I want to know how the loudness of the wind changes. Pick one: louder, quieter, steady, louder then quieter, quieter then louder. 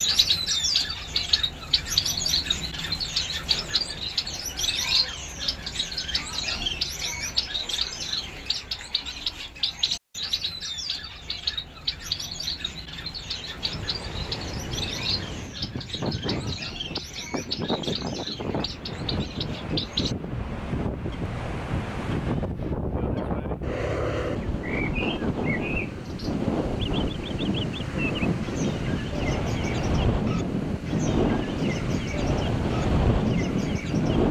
louder.